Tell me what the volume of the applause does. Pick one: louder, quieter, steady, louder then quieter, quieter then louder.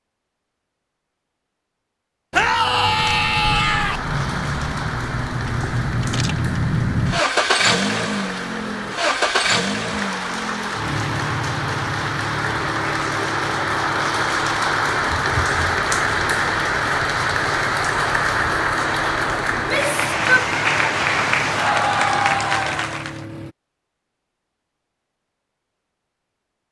louder.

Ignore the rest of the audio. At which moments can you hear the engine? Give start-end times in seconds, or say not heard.
2.4-23.6.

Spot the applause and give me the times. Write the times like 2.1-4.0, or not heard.
3.8-23.2.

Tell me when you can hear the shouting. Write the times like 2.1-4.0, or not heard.
2.3-4.0, 19.6-20.5.